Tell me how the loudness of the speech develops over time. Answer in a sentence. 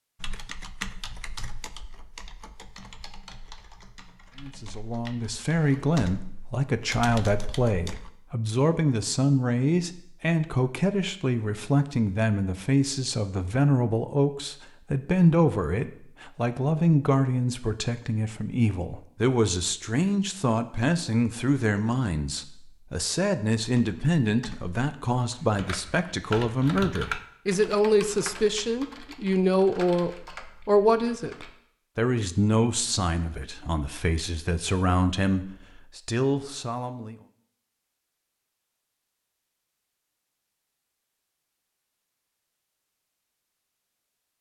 The volume of the speech stays about the same.